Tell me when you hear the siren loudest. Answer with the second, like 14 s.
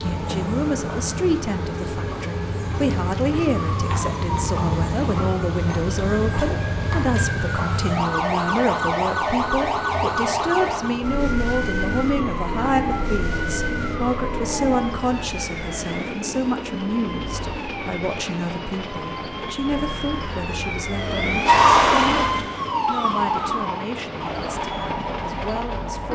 22 s.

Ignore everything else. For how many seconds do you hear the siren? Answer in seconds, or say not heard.
26 s.